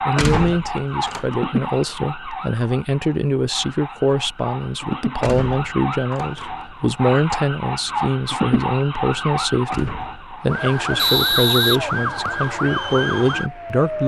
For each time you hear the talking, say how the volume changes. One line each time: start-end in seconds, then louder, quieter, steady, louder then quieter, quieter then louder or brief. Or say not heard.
0.1-14.0 steady.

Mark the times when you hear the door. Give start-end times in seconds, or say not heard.
0.1-1.2, 5.2-6.5, 9.7-10.3.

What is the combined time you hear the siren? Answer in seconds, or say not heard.
14 s.